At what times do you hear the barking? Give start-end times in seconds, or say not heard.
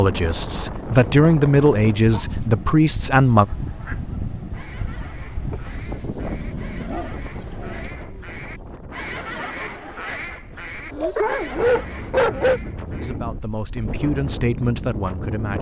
1.0-2.3, 5.5-7.9, 10.9-12.6.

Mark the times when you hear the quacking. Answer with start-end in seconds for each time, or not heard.
3.4-13.2.